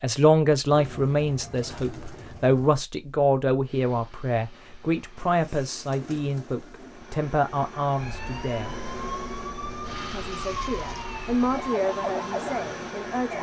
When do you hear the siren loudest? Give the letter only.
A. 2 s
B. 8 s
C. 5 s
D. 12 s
D.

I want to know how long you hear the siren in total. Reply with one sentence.
The siren can be heard for 5 seconds in total.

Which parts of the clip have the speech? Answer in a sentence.
You can hear the speech from 0.0 to 8.8 s and from 10.1 to 13.3 s.